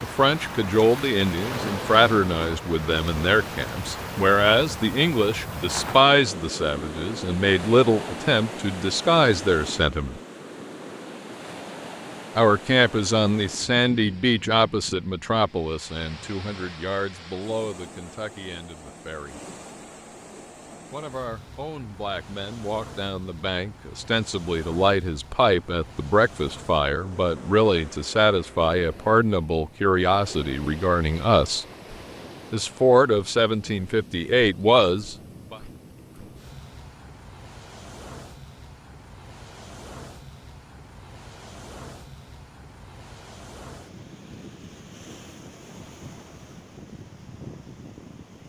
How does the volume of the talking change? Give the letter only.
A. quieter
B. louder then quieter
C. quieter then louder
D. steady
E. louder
C.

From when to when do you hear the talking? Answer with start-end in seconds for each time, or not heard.
0.0-10.2, 12.3-19.4, 20.9-31.6, 32.5-35.6.